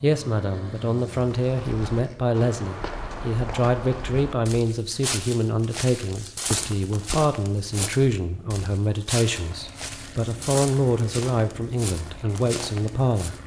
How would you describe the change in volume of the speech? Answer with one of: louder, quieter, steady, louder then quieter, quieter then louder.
steady.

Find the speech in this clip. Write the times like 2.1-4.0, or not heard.
0.0-13.4.